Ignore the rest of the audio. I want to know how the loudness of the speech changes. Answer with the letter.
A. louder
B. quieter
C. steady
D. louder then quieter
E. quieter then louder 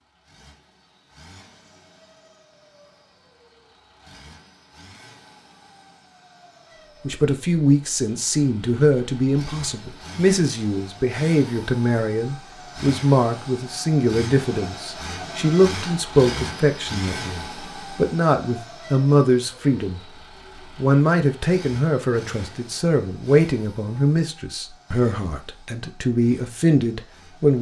C.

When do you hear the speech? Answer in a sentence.
The speech can be heard from 7.0 to 20.0 s and from 20.8 to 27.5 s.